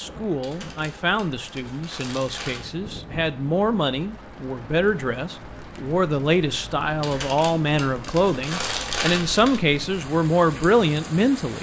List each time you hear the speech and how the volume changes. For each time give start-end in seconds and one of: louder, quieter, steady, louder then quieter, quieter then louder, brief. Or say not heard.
0.0-11.5 louder.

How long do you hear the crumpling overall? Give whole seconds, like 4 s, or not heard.
5 s.